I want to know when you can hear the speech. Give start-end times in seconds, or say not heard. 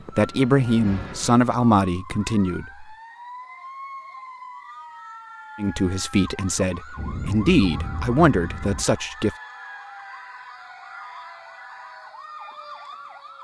0.1-2.9, 5.5-9.3.